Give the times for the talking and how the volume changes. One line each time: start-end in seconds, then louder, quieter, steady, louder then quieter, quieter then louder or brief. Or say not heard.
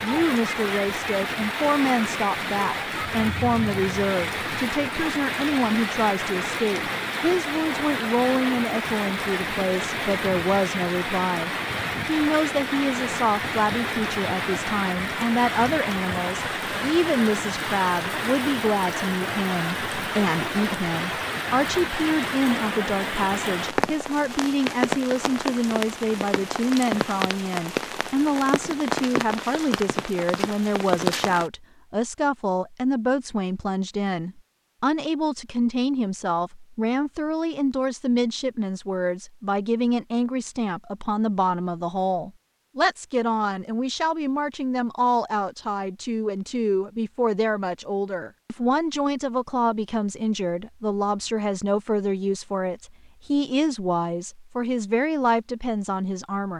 0.0-56.5 steady.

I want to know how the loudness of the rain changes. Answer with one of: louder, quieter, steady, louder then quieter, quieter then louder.
steady.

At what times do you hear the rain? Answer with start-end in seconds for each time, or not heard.
0.0-31.5.